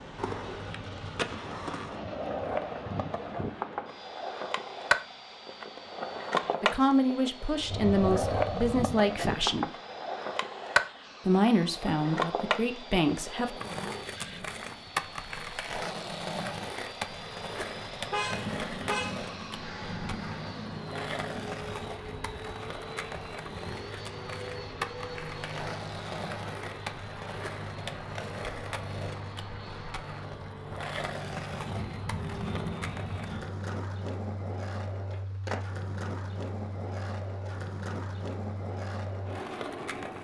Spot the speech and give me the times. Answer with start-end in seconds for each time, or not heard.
6.6-9.7, 11.2-13.6.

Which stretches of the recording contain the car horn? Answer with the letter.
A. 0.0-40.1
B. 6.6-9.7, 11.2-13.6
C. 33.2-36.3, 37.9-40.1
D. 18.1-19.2
D.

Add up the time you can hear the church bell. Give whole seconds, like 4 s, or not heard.
not heard.